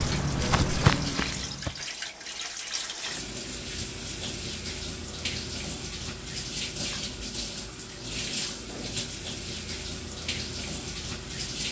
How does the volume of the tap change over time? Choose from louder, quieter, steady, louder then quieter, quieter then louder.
steady.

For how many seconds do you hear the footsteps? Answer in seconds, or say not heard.
2 s.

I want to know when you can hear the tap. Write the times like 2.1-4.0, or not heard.
0.0-11.6.